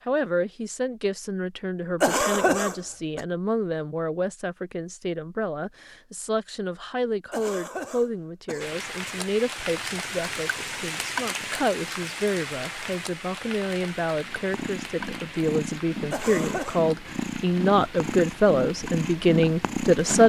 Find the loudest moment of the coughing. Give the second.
2 s.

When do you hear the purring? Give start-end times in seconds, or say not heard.
14.2-20.2.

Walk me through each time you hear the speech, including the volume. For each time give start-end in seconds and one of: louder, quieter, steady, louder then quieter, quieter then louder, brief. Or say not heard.
0.1-20.2 louder.